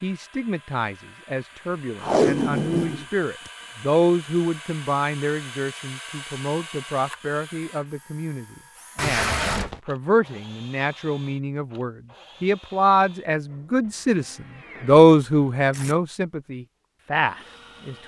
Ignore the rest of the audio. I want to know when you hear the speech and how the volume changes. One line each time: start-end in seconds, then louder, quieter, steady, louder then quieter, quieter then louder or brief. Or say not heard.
0.0-18.0 louder.